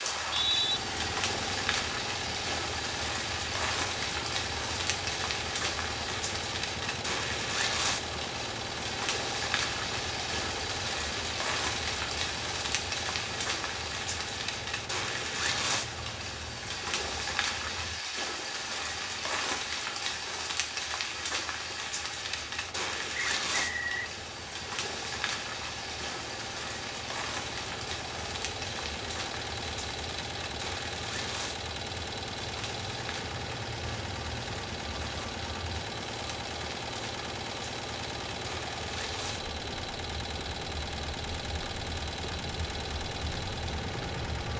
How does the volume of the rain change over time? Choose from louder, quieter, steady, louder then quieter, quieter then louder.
quieter.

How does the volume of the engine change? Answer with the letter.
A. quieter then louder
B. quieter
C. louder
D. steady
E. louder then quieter
A.